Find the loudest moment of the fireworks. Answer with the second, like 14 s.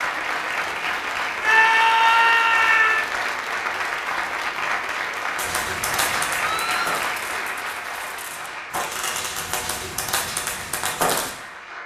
11 s.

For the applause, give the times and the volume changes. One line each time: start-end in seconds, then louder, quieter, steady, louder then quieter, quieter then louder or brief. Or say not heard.
0.0-11.8 quieter.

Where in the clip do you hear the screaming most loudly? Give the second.
2 s.